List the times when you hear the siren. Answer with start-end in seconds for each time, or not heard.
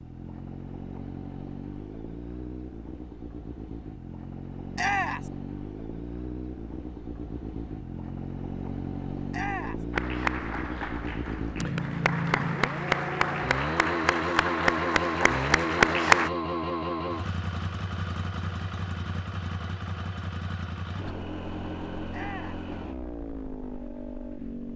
not heard.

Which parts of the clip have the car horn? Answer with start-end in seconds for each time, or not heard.
not heard.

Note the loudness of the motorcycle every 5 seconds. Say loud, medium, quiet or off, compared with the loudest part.
medium, medium, loud, loud, medium.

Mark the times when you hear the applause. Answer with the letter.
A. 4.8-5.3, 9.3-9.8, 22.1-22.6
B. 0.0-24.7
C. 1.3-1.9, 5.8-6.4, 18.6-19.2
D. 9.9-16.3
D.